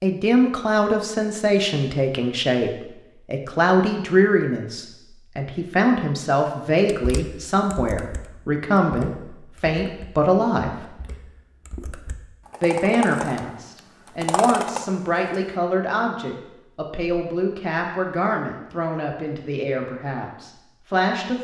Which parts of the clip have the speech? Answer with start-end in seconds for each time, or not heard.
0.0-10.9, 12.6-21.3.